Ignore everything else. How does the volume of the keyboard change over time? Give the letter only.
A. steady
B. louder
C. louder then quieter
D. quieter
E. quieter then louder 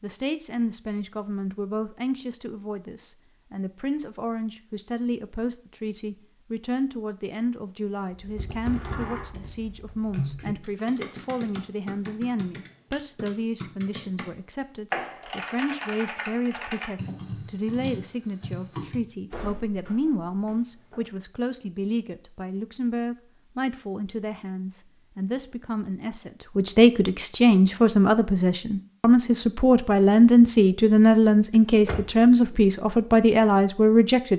B.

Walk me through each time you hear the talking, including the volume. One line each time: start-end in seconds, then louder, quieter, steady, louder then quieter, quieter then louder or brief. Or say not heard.
0.0-34.3 louder.